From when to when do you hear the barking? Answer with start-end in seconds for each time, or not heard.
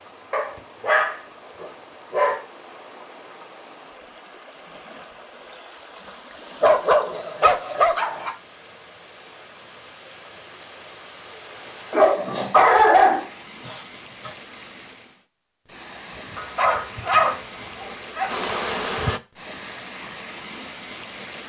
0.3-2.4, 6.6-8.3, 11.9-14.3, 16.4-18.3.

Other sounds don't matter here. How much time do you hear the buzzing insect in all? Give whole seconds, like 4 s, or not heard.
3 s.